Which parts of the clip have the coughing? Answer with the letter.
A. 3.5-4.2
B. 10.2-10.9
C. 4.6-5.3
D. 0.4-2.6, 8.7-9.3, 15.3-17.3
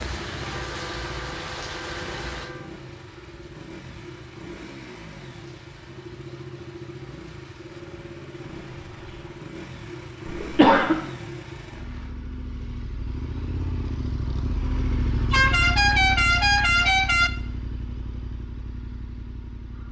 B.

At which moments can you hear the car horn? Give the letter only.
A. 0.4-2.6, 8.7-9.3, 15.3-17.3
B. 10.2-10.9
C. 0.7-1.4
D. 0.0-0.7
A.